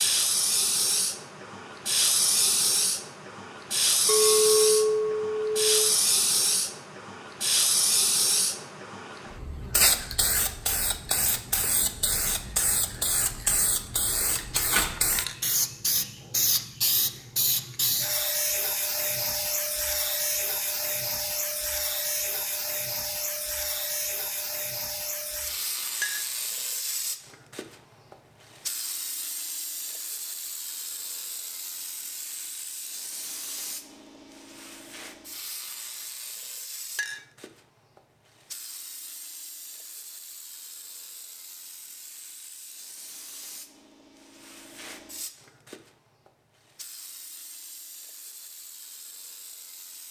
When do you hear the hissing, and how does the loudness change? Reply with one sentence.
The hissing can be heard from 0.0 to 50.0 s, getting quieter.